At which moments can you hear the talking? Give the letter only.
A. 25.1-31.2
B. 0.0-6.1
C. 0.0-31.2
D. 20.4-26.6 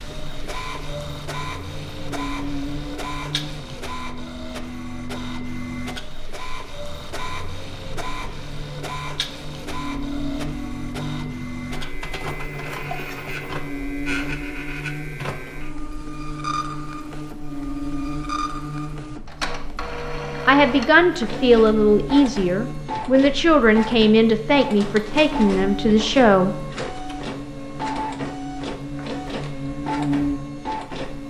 D.